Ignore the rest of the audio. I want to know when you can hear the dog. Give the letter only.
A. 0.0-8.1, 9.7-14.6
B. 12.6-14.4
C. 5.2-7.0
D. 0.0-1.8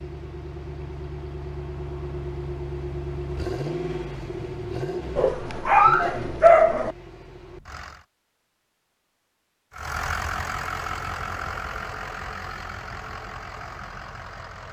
C.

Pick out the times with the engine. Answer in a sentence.
You can hear the engine from 0.0 to 8.1 s and from 9.7 to 14.6 s.